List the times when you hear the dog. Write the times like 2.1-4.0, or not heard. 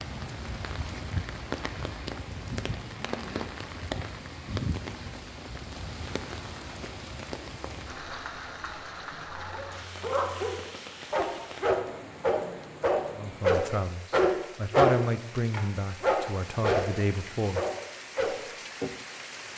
9.3-18.4.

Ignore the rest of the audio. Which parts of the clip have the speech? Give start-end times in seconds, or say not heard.
13.2-17.6.